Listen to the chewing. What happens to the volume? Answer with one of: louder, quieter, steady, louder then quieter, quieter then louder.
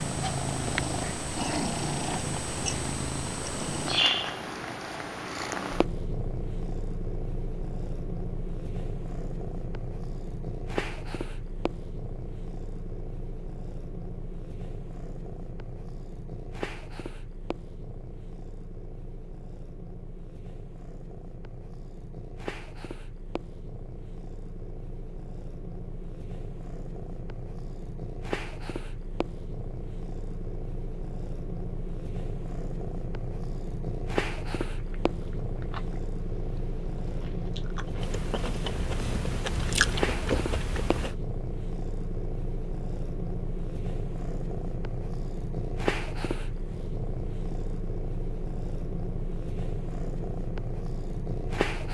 quieter then louder.